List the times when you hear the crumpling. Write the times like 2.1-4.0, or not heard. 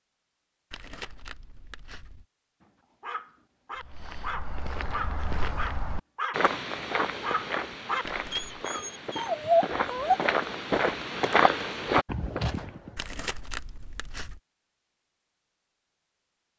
0.7-2.2, 8.1-8.6, 12.9-14.4.